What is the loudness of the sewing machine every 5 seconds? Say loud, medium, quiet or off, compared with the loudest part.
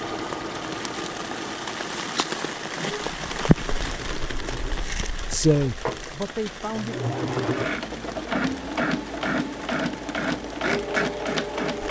medium, loud, loud.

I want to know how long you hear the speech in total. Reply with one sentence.
The speech can be heard for 2 seconds in total.